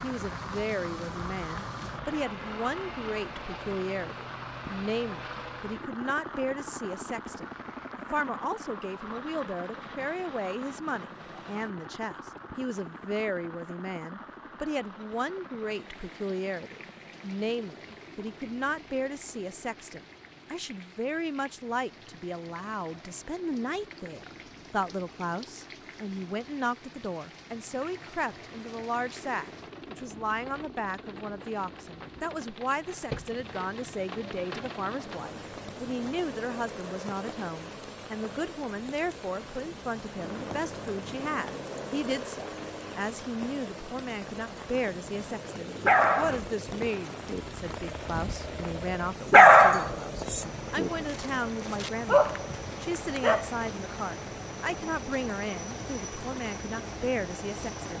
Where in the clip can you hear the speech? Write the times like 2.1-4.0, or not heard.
0.0-57.9.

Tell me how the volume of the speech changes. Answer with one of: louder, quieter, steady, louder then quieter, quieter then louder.
steady.